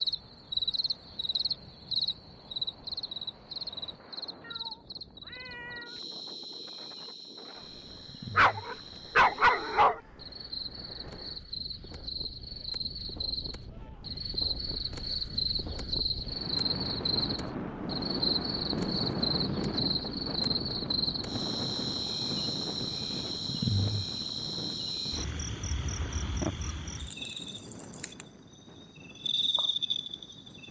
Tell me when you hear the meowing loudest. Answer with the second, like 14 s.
6 s.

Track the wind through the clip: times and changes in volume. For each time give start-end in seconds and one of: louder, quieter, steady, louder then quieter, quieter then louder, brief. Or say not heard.
0.0-30.6 louder then quieter.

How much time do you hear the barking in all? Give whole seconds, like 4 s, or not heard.
2 s.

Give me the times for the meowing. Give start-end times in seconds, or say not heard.
4.4-6.0.